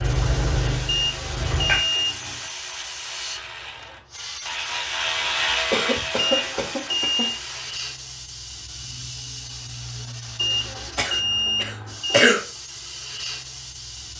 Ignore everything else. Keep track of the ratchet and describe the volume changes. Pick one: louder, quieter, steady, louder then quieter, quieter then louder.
louder then quieter.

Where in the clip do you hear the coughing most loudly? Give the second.
12 s.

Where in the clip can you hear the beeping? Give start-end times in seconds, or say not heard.
0.8-2.1, 6.2-7.4, 10.3-12.3.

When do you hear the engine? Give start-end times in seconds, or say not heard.
0.0-1.9.